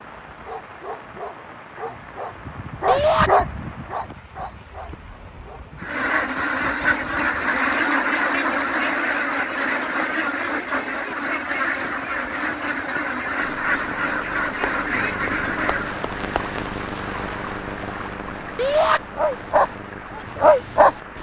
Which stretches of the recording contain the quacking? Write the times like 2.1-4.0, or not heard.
5.8-15.9.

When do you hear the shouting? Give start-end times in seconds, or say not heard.
2.9-3.3, 18.6-19.0.